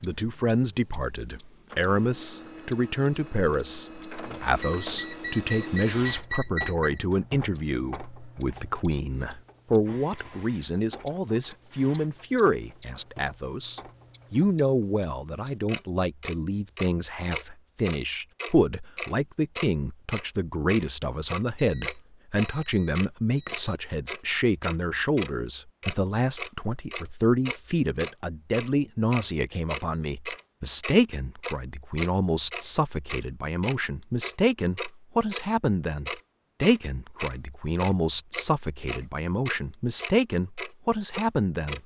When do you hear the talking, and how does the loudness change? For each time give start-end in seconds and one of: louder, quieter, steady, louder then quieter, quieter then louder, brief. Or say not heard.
0.0-41.8 steady.